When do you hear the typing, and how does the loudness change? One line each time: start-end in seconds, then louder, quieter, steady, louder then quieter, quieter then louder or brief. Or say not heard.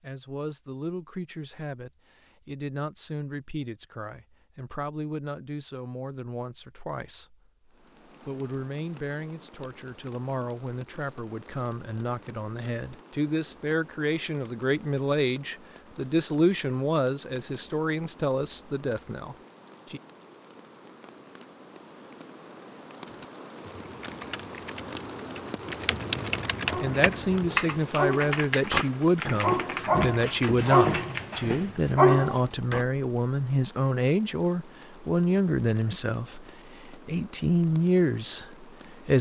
23.1-31.2 louder then quieter.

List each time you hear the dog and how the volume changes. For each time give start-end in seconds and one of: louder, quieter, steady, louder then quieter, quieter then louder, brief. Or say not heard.
26.6-32.9 louder.